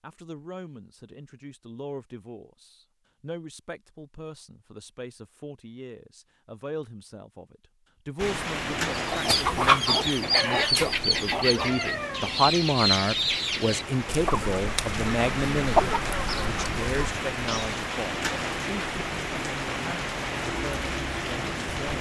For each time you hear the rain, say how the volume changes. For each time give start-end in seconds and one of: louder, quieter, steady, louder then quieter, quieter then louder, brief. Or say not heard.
8.2-21.9 quieter then louder.